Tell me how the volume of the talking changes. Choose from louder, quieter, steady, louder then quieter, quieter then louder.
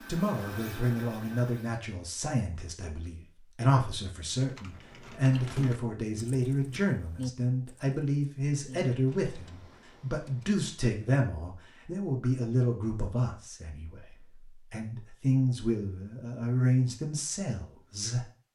steady.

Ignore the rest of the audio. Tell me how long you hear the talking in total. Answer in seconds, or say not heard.
18 s.